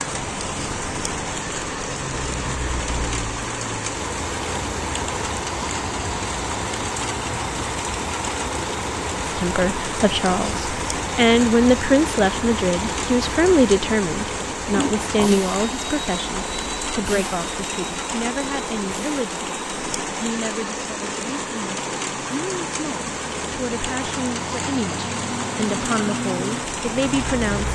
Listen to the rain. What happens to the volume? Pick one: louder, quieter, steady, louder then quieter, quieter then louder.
steady.